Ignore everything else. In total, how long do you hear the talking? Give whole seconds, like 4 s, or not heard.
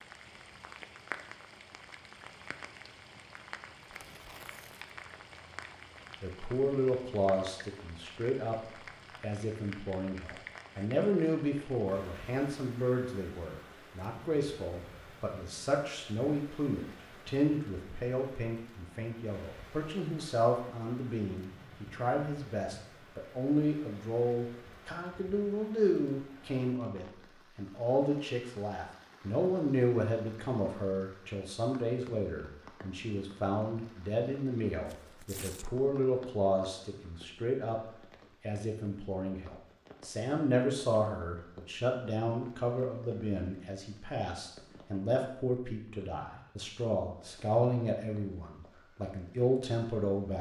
43 s.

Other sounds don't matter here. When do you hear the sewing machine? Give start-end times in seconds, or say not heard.
not heard.